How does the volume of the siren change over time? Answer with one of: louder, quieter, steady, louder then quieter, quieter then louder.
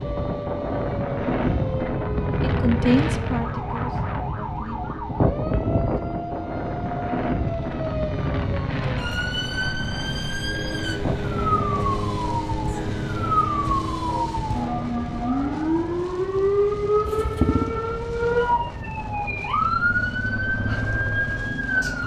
louder.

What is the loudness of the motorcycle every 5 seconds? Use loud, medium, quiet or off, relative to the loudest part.
medium, medium, loud, loud, loud.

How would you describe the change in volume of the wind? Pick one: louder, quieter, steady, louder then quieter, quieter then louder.
quieter.